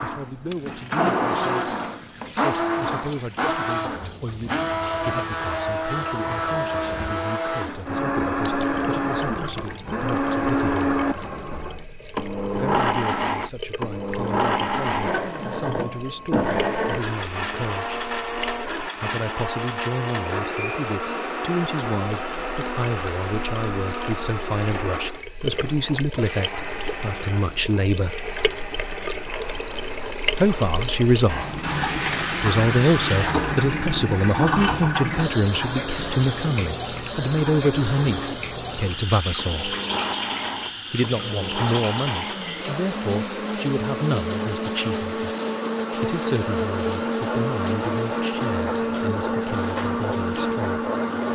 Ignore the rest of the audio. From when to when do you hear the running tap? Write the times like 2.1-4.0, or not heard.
0.0-18.9, 22.1-51.3.